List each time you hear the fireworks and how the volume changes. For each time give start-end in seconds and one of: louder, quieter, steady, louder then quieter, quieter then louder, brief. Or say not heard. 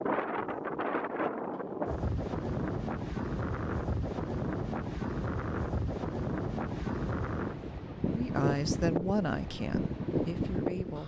not heard.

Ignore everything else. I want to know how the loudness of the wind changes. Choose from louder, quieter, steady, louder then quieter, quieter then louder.
steady.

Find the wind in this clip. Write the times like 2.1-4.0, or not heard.
0.0-11.0.